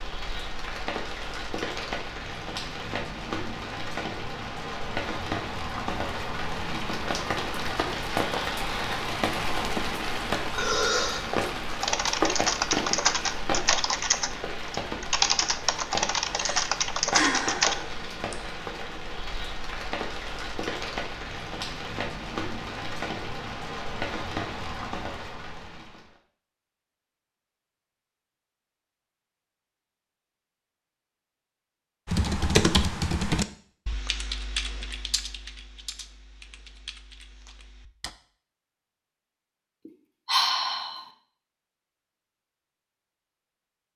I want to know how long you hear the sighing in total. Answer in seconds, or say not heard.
4 s.